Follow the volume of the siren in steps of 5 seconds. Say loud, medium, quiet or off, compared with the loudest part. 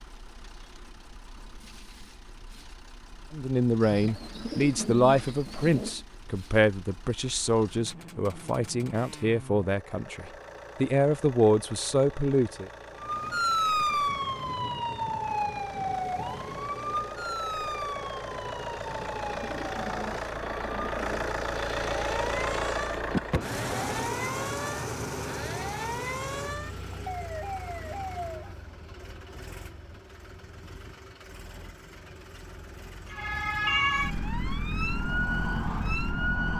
off, off, loud, medium, medium, medium, loud, loud.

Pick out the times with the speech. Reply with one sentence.
You can hear the speech from 3.3 to 12.7 s.